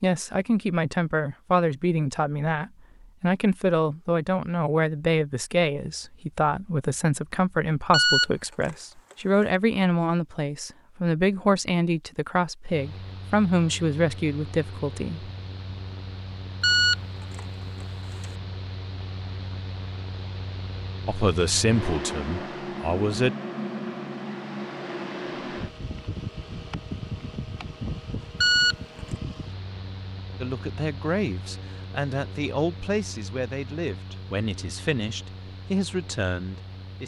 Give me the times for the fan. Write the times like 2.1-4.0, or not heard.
12.7-37.0.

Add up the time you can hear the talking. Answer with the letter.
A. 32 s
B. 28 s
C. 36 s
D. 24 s
D.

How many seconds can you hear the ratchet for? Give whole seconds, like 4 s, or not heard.
not heard.